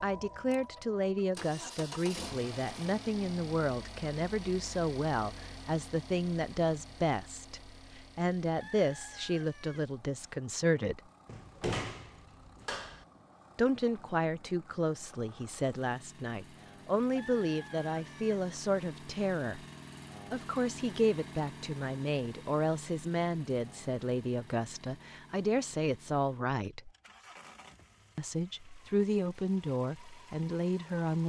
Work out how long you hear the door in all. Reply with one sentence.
The door can be heard for 2 seconds in total.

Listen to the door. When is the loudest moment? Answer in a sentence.
The loudest moment of the door is at 12 seconds.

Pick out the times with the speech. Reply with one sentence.
The speech can be heard from 0.0 to 11.0 s, from 13.6 to 19.6 s, from 20.3 to 26.9 s and from 28.1 to 31.2 s.